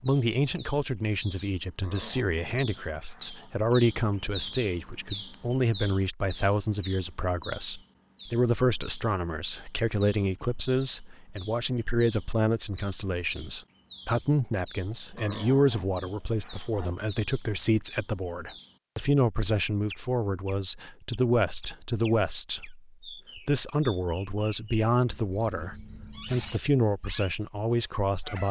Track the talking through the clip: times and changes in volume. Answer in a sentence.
You can hear the talking from 0.0 to 28.4 s, at a steady volume.